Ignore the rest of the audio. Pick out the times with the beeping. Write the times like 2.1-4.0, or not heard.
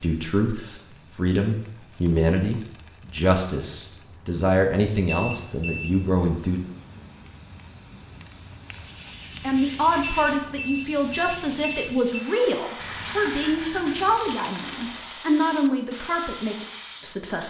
5.0-6.0, 10.0-12.3.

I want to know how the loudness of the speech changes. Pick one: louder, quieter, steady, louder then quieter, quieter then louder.
steady.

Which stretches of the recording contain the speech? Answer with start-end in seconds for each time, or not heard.
0.0-6.6, 9.4-17.4.